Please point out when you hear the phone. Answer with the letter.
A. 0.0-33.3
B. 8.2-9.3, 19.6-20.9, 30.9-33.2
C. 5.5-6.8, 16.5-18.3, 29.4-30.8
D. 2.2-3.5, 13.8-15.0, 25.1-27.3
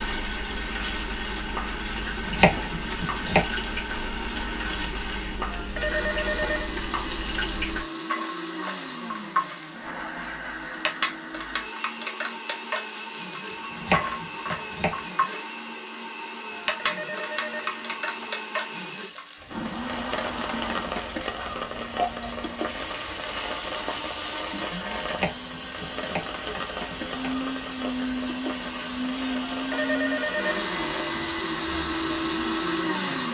C.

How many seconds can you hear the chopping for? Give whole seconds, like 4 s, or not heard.
5 s.